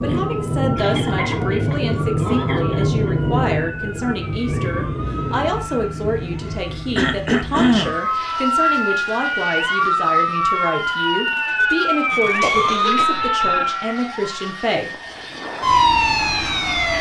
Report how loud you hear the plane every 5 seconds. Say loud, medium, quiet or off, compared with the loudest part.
loud, medium, quiet, medium.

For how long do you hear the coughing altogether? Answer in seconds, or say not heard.
4 s.